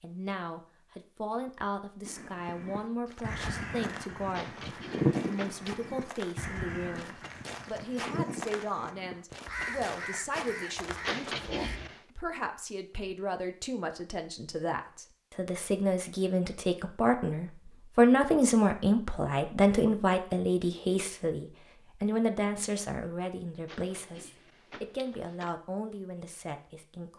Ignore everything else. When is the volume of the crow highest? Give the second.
5 s.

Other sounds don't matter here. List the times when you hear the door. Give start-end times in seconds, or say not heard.
4.3-5.8, 11.0-12.1, 23.6-25.6.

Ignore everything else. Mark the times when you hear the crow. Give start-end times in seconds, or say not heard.
2.0-11.8.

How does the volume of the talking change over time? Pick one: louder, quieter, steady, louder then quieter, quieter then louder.
louder then quieter.